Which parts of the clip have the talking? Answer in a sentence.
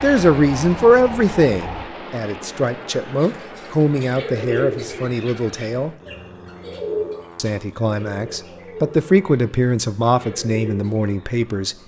You can hear the talking from 0.0 to 6.0 s and from 7.3 to 11.8 s.